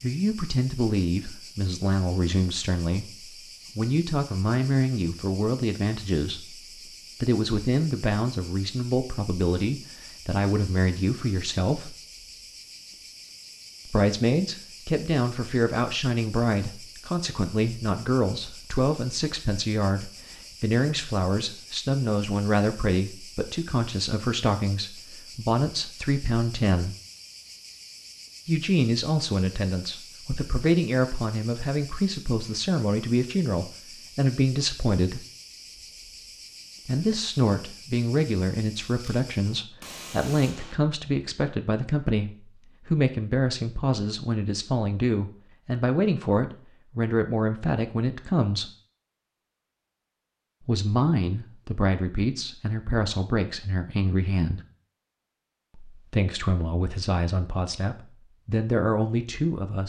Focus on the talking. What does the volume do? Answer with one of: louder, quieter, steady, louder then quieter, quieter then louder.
steady.